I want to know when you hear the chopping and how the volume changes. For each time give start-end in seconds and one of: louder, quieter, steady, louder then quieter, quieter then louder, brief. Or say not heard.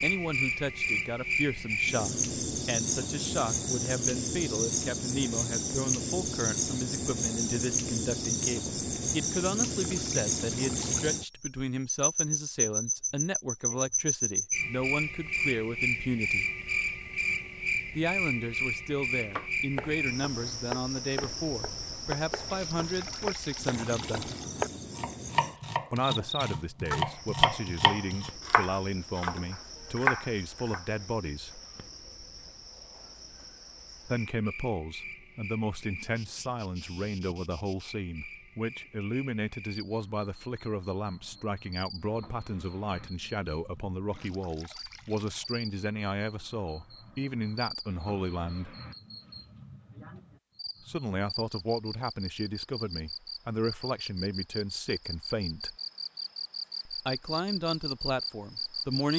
19.4-30.9 louder.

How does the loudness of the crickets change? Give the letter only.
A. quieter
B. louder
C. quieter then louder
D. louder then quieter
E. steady
C.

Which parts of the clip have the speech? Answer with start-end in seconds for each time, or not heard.
0.0-16.4, 17.9-24.3, 25.9-31.6, 34.0-48.8, 50.8-55.8, 56.9-59.1.